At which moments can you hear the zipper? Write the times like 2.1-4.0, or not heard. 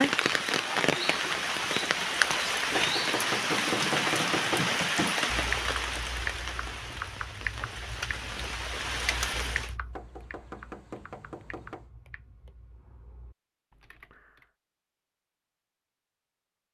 not heard.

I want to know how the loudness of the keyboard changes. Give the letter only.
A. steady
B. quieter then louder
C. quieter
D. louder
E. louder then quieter
C.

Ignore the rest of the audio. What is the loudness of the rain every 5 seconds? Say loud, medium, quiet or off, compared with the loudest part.
loud, medium, off, off.